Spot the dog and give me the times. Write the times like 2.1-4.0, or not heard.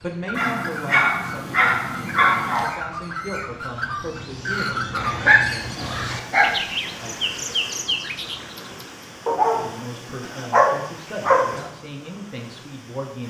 0.3-2.8, 4.5-6.5, 9.2-11.6.